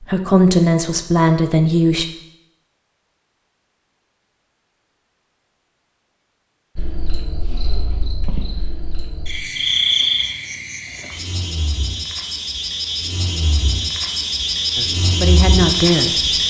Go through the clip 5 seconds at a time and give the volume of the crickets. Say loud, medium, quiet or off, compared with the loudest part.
off, medium, medium, loud.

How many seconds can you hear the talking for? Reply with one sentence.
The talking can be heard for 4 seconds in total.